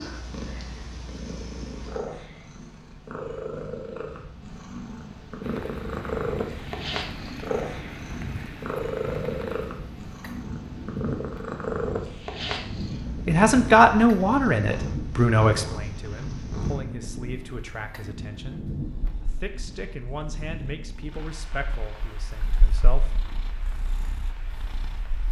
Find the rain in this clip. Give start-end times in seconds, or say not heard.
5.4-25.2.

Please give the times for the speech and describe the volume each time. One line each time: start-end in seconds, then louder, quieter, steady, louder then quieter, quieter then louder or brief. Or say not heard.
13.2-18.6 quieter
19.2-23.2 quieter.